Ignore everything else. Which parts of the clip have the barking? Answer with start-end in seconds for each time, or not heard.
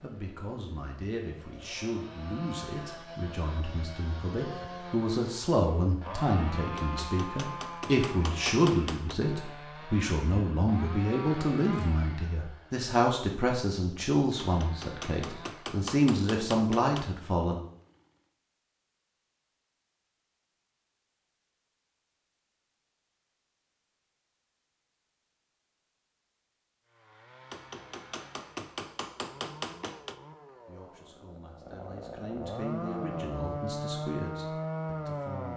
not heard.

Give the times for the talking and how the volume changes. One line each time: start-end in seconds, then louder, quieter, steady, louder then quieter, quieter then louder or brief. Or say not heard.
0.0-17.6 louder
30.6-35.5 louder then quieter.